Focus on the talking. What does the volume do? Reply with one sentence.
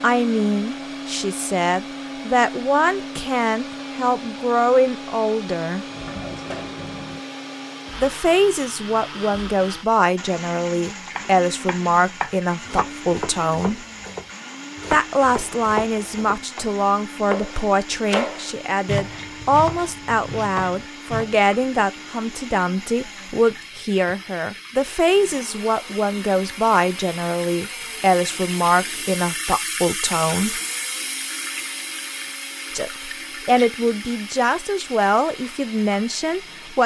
The loudness of the talking stays about the same.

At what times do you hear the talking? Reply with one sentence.
The talking can be heard from 0.0 to 5.8 s, from 8.0 to 13.8 s, from 14.9 to 30.6 s and from 32.8 to 36.8 s.